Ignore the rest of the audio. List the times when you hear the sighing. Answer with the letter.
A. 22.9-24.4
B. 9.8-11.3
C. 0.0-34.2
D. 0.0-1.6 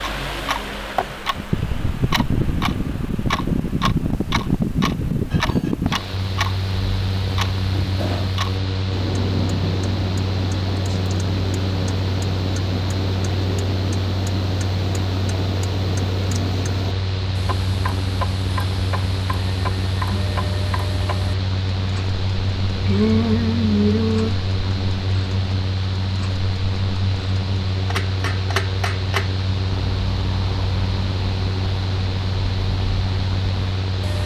A.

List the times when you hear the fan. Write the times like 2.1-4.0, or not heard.
0.0-34.2.